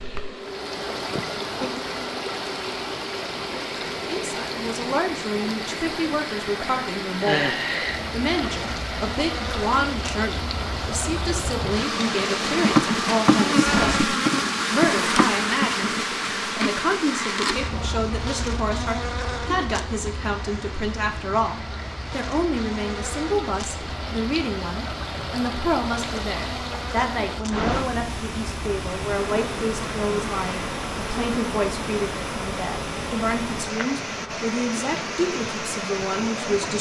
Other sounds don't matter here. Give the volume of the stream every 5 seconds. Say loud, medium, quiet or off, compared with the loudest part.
loud, loud, loud, medium, medium, loud, loud, loud.